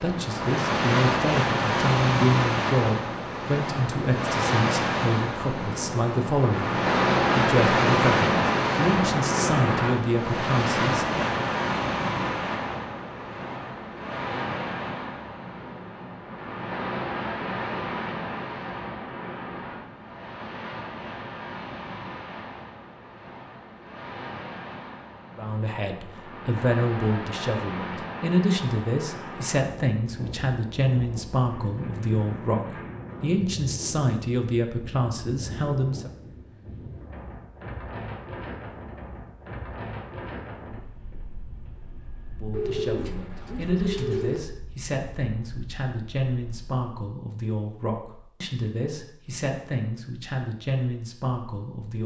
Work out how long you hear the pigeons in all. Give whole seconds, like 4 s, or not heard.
2 s.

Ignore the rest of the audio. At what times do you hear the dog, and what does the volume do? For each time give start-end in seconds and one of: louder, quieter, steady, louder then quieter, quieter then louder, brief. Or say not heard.
not heard.